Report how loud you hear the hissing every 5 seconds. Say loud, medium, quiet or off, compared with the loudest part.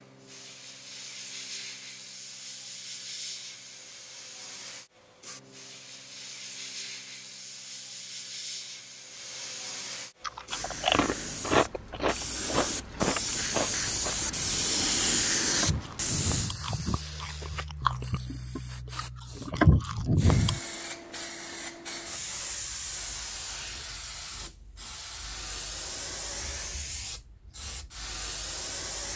medium, medium, loud, loud, medium, medium.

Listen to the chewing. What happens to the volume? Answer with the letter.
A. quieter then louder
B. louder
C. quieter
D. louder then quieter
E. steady
A.